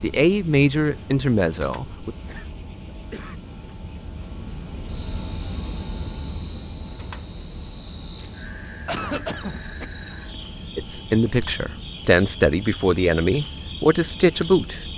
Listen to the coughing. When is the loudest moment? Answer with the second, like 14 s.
9 s.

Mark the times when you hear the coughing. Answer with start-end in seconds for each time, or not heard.
2.2-3.4, 8.8-9.6.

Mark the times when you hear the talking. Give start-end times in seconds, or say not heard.
0.0-2.1, 10.8-14.8.